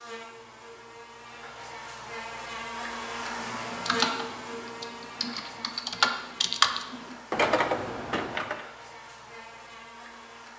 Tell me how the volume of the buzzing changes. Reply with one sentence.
The volume of the buzzing goes up, then down.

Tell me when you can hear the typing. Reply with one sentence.
You can hear the typing from 3.5 to 8.6 s.